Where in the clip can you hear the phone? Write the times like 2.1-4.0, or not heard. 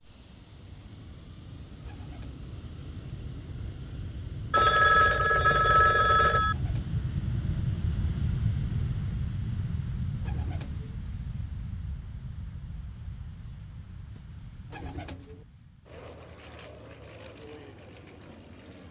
4.5-6.5.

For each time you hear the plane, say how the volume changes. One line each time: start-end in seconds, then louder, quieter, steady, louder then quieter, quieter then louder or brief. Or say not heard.
0.0-18.8 louder then quieter.